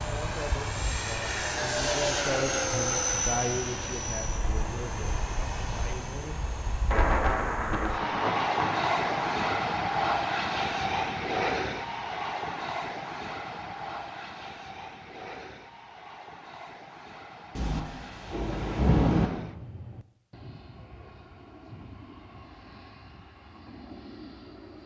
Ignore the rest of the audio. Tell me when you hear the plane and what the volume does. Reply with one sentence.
You can hear the plane from 0.0 to 24.8 s, getting quieter.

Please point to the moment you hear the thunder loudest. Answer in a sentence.
The volume of the thunder peaks at 19 seconds.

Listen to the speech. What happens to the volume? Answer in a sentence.
The volume of the speech goes up, then down.